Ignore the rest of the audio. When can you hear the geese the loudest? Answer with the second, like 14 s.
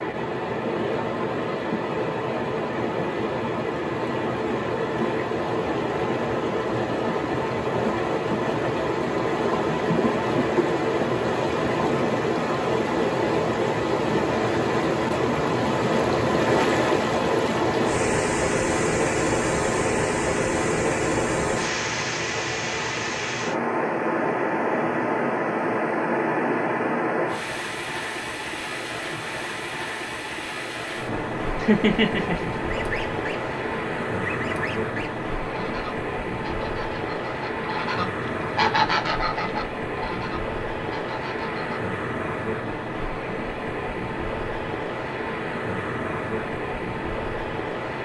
39 s.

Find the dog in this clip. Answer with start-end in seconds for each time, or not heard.
not heard.